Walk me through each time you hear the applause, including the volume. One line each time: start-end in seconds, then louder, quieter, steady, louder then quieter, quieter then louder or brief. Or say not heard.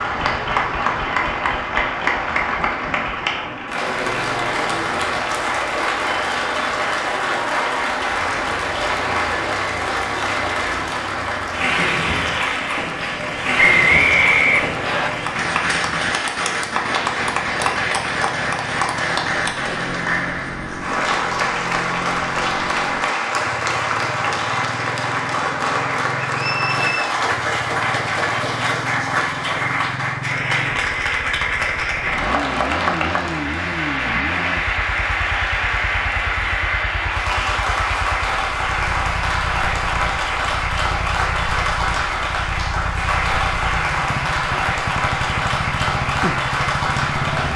0.0-47.5 steady.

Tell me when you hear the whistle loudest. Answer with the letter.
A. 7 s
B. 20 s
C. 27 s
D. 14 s
D.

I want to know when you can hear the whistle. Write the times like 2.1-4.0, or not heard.
13.6-15.1, 26.4-27.1.